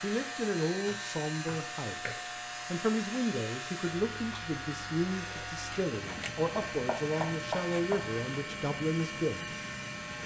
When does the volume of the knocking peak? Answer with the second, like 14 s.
7 s.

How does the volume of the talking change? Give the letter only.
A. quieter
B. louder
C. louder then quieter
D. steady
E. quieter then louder
D.